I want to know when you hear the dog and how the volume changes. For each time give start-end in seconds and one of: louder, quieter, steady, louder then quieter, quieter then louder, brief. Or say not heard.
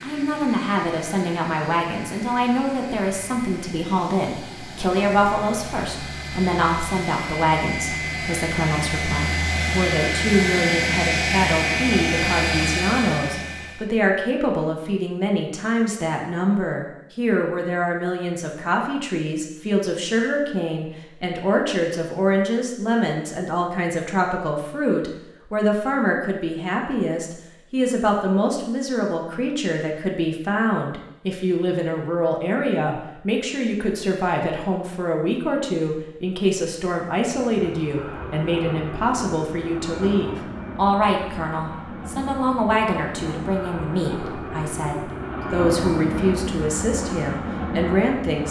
not heard.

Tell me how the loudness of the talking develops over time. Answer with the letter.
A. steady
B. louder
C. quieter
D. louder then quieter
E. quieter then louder
A.